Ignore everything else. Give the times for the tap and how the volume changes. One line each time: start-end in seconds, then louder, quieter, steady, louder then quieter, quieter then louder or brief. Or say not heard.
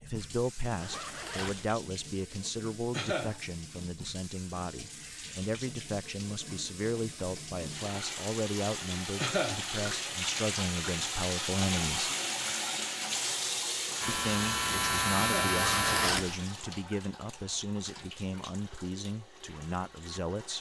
0.0-20.5 louder then quieter.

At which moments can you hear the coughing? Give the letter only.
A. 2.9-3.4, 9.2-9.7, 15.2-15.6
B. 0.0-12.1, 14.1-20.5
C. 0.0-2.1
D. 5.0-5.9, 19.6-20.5
A.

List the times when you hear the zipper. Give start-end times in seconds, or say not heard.
0.8-1.7, 15.4-16.4.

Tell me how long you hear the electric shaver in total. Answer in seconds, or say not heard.
2 s.